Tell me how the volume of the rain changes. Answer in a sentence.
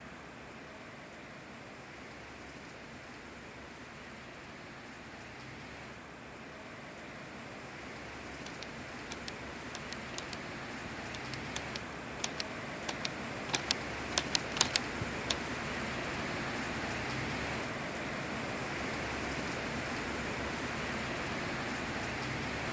The loudness of the rain goes up.